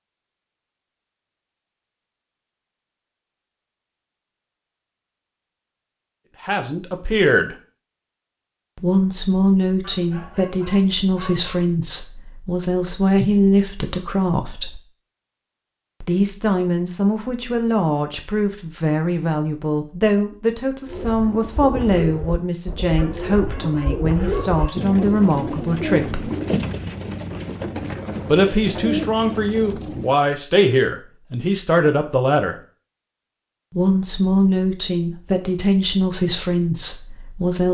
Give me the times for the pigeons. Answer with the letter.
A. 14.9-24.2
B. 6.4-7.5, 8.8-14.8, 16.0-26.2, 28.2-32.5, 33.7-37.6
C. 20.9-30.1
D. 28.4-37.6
C.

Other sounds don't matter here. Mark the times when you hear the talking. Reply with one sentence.
You can hear the talking from 6.4 to 7.5 s, from 8.8 to 14.8 s, from 16.0 to 26.2 s, from 28.2 to 32.5 s and from 33.7 to 37.6 s.